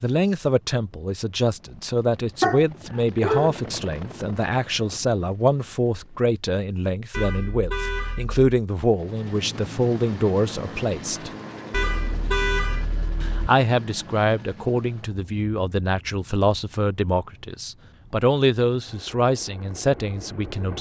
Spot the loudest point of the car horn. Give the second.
12 s.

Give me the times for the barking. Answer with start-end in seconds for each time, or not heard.
2.4-3.5.